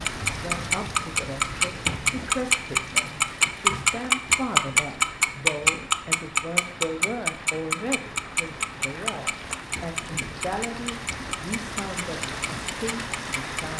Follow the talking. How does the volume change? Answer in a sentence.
The volume of the talking stays about the same.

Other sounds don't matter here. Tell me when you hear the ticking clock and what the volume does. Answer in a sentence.
The ticking clock can be heard from 0.1 to 13.7 s, getting quieter.